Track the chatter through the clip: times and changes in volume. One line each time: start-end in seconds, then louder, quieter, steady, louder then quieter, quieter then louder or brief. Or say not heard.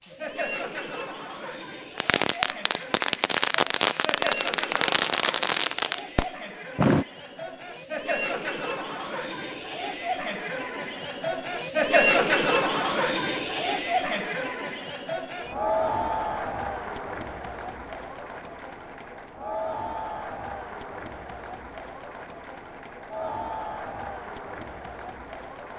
0.0-25.7 louder then quieter.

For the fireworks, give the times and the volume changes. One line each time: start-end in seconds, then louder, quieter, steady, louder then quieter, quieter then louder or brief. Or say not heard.
1.9-7.0 steady.